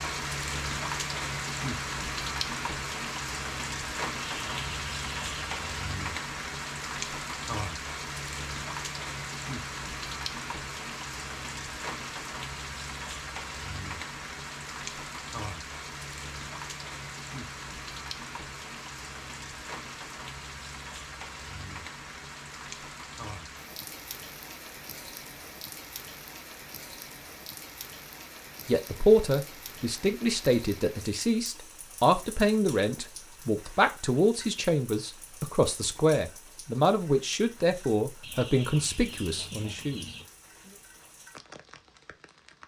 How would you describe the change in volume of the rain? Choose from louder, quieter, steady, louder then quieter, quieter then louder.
quieter.